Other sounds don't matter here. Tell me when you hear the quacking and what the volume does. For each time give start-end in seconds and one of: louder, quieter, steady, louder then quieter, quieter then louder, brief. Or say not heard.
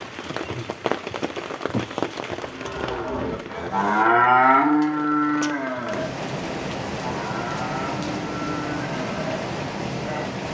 not heard.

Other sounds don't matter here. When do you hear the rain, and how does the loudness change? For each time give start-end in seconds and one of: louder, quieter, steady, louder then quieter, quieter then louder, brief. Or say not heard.
0.0-10.4 quieter then louder.